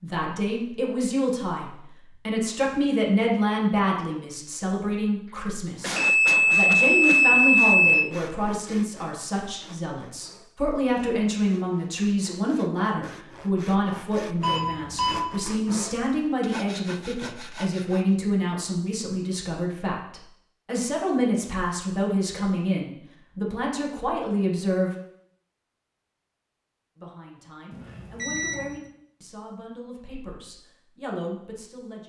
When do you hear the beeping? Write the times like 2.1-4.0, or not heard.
6.0-8.0, 14.4-15.2, 27.7-28.8.